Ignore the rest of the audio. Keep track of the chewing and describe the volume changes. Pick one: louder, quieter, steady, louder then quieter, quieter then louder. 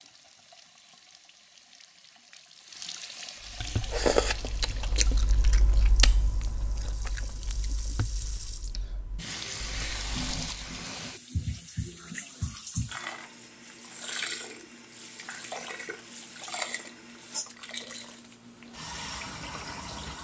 quieter.